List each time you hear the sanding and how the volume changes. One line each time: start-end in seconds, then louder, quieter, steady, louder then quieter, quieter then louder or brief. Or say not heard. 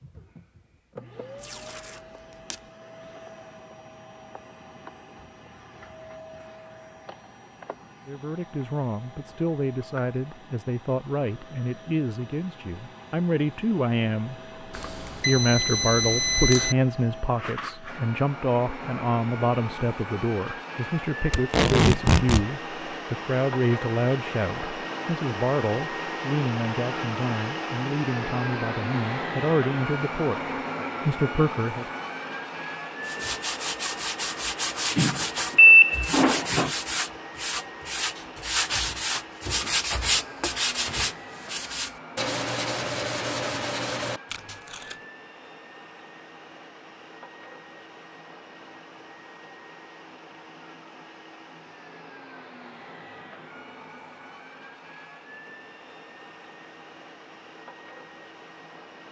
33.0-44.6 steady.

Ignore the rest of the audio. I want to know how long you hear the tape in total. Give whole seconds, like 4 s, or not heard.
3 s.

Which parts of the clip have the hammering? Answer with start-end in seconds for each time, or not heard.
not heard.